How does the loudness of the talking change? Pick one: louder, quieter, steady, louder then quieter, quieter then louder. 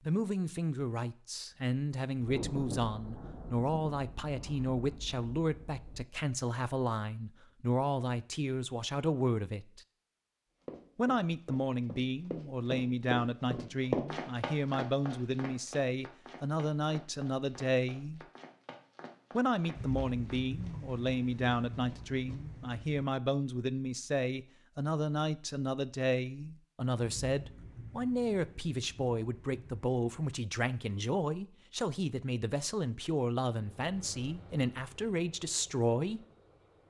steady.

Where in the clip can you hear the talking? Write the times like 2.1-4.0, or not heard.
0.1-9.8, 10.9-18.2, 19.3-36.2.